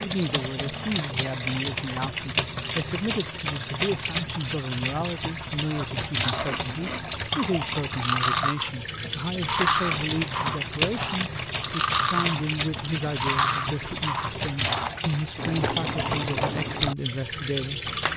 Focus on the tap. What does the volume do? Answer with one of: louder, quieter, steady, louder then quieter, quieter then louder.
steady.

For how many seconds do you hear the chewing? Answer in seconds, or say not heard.
11 s.